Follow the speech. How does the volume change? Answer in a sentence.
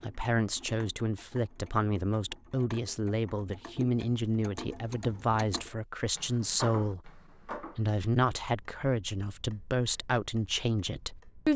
The loudness of the speech stays about the same.